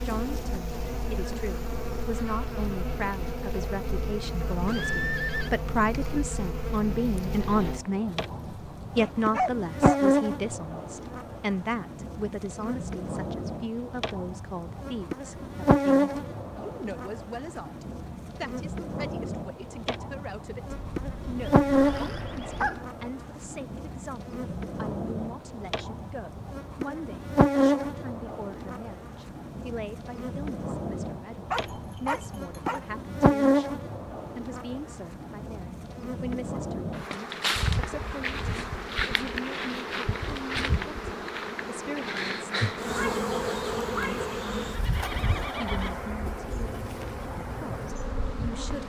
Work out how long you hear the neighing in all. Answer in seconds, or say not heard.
4 s.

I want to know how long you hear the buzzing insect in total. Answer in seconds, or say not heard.
49 s.